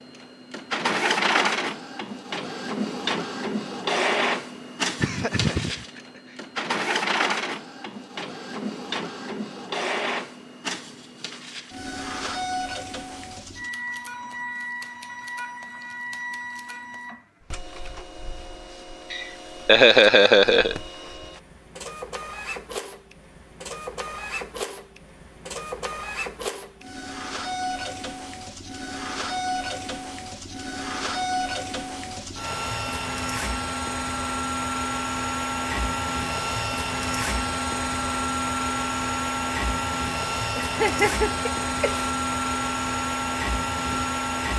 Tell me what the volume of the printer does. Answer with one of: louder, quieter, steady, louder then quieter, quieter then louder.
quieter then louder.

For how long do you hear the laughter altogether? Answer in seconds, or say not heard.
4 s.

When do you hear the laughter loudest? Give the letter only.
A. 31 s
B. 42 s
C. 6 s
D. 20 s
D.